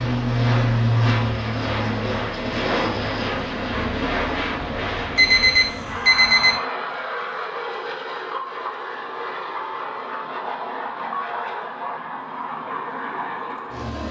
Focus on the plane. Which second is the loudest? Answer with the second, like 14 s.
1 s.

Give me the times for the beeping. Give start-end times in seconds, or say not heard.
5.2-6.5.